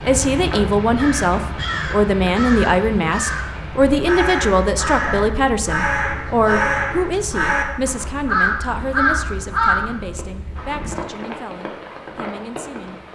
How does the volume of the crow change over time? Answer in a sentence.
The loudness of the crow goes up.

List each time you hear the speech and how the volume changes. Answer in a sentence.
The speech can be heard from 0.0 to 13.0 s, getting quieter.